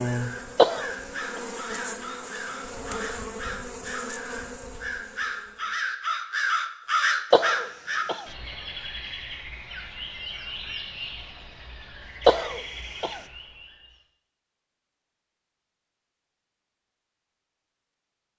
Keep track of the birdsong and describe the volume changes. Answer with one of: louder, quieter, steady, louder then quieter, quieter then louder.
louder then quieter.